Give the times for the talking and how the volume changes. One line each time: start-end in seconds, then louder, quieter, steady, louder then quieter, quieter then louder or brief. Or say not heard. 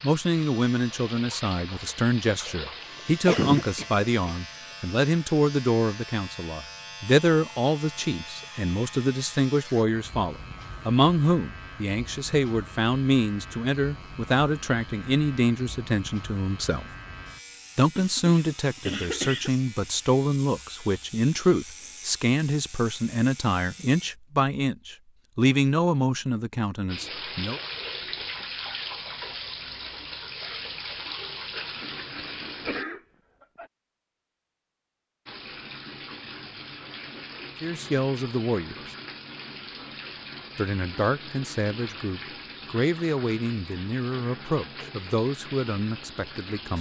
0.0-16.9 steady
17.8-27.6 steady
37.6-39.0 brief
40.5-46.7 steady.